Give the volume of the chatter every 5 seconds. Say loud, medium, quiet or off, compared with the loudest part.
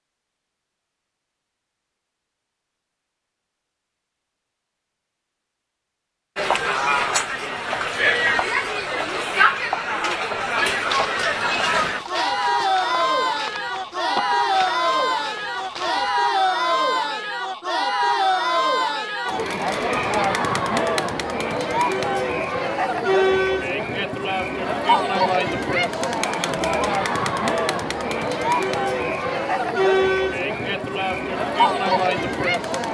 off, loud, loud, loud, loud, loud, loud.